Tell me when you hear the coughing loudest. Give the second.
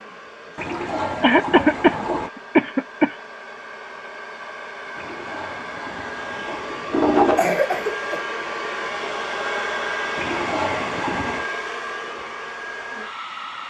2 s.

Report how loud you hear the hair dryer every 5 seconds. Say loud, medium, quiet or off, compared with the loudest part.
medium, loud, loud.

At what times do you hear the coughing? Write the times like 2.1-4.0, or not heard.
1.2-3.1, 7.2-8.2.